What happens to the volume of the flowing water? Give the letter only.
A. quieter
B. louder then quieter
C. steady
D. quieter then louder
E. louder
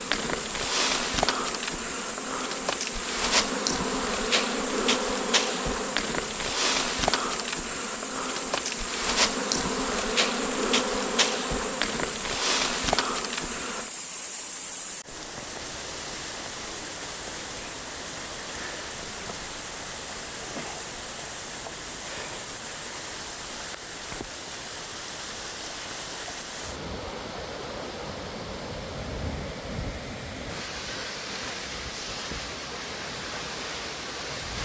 C.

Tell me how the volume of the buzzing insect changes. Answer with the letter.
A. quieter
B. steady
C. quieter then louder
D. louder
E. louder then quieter
B.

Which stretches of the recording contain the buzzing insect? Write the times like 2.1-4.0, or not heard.
0.0-13.9.